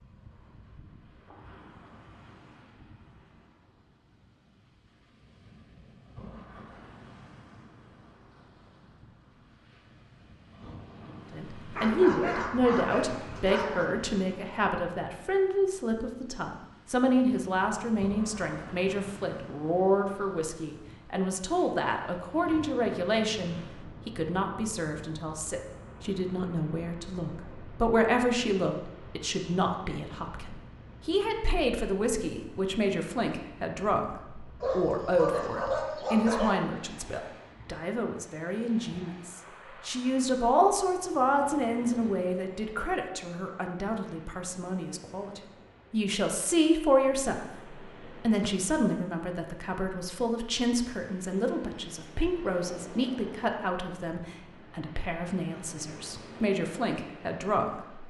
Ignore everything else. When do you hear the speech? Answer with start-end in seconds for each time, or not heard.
11.3-58.0.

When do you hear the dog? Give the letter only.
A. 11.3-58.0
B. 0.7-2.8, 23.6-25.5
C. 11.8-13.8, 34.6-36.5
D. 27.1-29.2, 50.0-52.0
C.